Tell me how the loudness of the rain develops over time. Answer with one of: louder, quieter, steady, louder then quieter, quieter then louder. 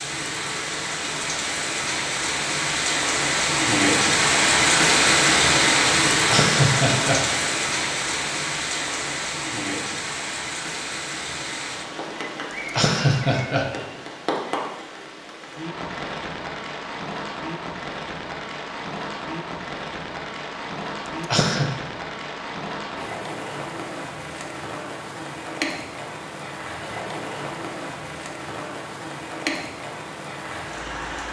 quieter.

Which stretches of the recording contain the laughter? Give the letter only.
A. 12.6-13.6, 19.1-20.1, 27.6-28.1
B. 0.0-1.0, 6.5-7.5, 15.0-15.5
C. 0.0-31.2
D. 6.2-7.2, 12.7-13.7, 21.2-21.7
D.